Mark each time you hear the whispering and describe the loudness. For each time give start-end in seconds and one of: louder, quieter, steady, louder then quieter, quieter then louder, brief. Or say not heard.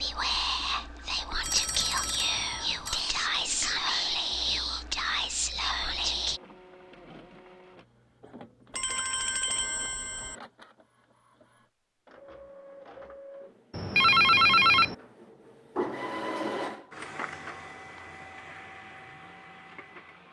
0.0-6.4 steady.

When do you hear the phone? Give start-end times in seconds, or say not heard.
1.4-3.0, 8.8-10.3, 13.7-14.9.